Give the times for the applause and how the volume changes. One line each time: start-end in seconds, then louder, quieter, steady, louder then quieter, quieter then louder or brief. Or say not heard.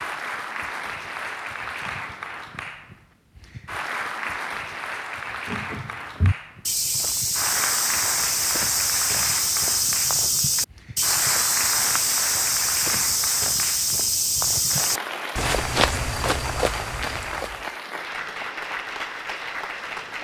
0.0-20.1 steady.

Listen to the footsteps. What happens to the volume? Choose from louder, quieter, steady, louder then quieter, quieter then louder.
steady.